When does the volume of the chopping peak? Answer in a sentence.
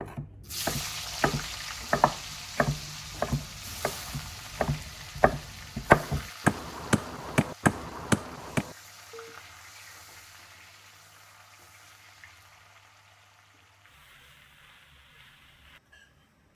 The loudest moment of the chopping is at 6 seconds.